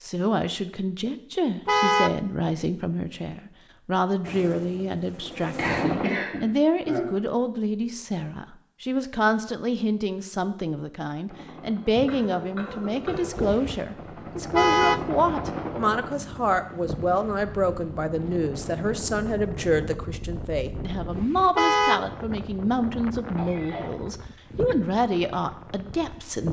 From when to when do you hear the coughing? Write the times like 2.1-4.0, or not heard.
5.5-7.2, 11.9-13.3, 23.4-23.9.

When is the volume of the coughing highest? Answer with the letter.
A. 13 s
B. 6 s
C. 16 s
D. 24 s
B.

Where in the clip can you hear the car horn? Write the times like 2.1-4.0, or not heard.
1.6-2.1, 14.5-15.0, 21.6-22.1.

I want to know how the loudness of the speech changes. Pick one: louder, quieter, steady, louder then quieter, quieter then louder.
steady.